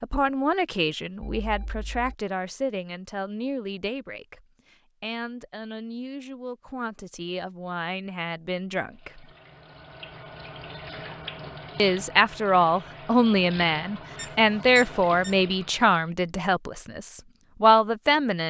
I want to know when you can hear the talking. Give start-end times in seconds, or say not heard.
0.0-9.3, 11.8-18.4.